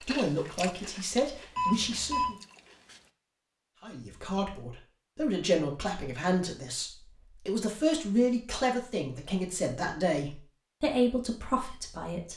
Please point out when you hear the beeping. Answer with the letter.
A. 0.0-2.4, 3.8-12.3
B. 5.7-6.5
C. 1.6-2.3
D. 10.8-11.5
C.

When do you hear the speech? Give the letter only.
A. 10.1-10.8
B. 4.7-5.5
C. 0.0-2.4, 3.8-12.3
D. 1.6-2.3
C.